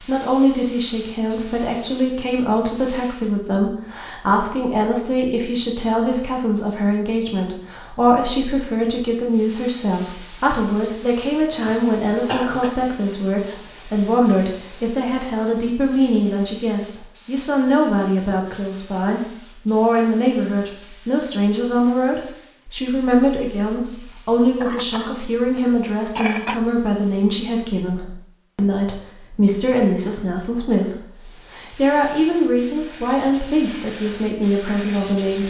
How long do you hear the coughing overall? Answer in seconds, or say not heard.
3 s.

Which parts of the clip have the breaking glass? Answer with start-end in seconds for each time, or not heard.
not heard.